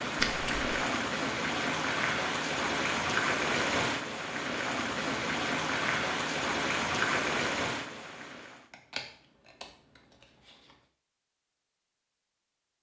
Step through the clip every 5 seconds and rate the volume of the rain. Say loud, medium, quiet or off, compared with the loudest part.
loud, loud, off.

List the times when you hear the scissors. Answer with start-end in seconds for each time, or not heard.
0.1-0.7, 8.7-10.7.